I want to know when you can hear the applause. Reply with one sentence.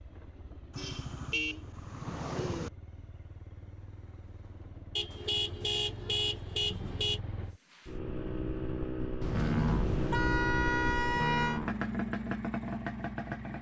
You can't hear the applause here.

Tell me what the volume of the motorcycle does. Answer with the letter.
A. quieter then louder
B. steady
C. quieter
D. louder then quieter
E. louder
E.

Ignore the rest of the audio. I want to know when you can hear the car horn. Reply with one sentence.
You can hear the car horn from 0.7 to 2.7 s, from 5.0 to 7.2 s and from 9.2 to 11.6 s.